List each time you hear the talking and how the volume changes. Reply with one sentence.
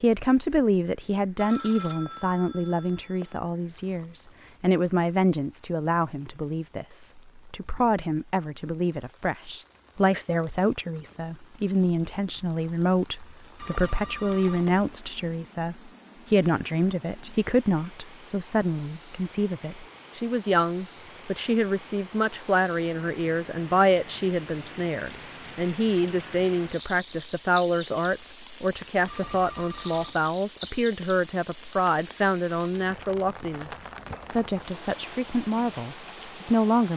You can hear the talking from 0.0 to 36.9 s, at a steady volume.